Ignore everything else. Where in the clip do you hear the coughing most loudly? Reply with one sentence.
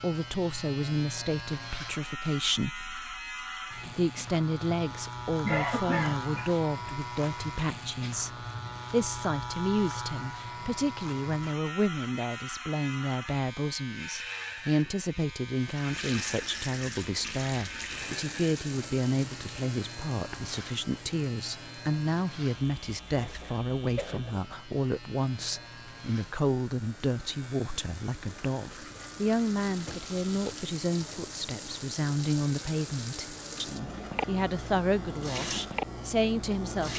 The loudest moment of the coughing is at 6 seconds.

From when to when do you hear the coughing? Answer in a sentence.
You can hear the coughing from 5.4 to 6.5 s and from 23.1 to 24.4 s.